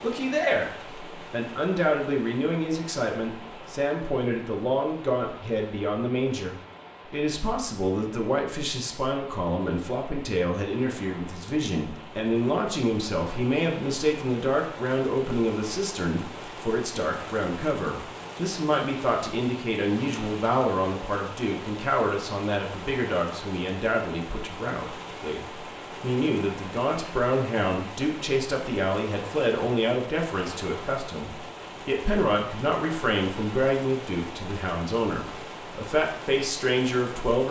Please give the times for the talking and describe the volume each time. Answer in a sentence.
The talking can be heard from 0.0 to 37.4 s, at a steady volume.